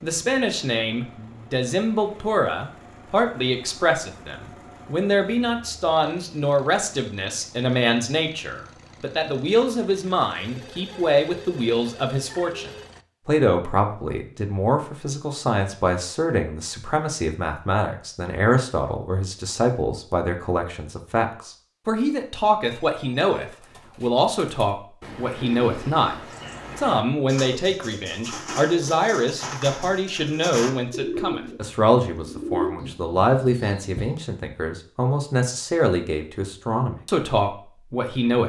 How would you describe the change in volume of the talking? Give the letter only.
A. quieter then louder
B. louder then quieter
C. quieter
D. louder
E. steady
E.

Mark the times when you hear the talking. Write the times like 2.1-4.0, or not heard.
0.0-38.4.